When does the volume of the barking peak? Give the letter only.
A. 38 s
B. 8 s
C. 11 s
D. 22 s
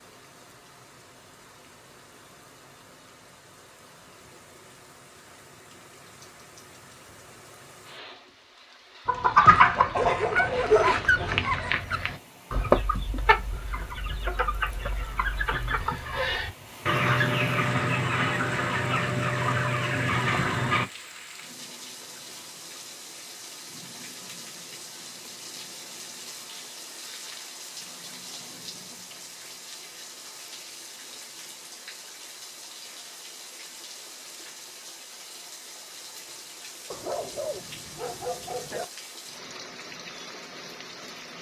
C.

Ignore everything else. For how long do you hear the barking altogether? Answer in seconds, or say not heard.
4 s.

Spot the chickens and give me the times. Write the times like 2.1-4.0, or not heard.
9.1-20.9.